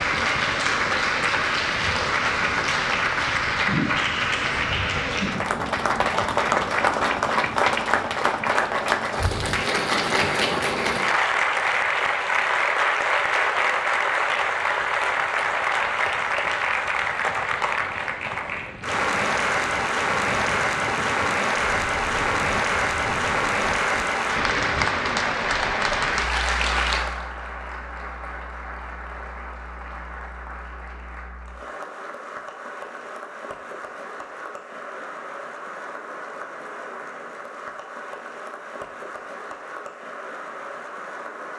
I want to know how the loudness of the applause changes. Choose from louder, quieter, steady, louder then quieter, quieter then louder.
quieter.